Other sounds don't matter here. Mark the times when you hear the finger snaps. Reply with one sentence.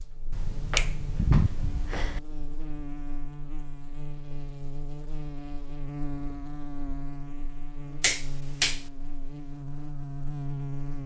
The finger snaps can be heard from 0.3 to 2.2 s and from 8.0 to 8.8 s.